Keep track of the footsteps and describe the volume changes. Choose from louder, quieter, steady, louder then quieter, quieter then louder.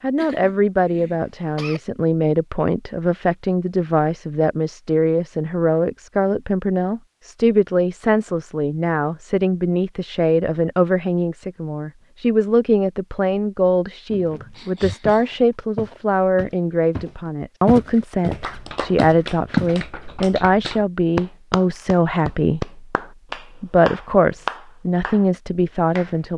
louder then quieter.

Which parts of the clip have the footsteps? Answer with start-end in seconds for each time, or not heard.
14.1-19.8.